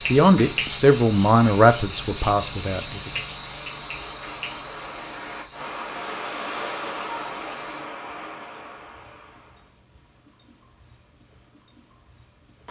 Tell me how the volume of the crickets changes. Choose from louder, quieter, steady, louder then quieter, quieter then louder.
quieter then louder.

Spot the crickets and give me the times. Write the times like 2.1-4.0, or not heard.
0.0-12.6.